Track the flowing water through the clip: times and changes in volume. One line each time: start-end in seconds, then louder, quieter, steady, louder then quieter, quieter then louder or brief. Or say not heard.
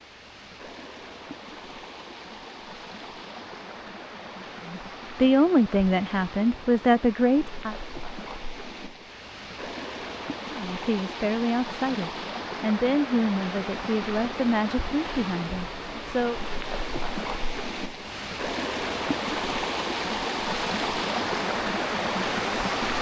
0.0-22.9 louder.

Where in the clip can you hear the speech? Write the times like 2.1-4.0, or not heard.
4.7-7.8, 10.6-16.4.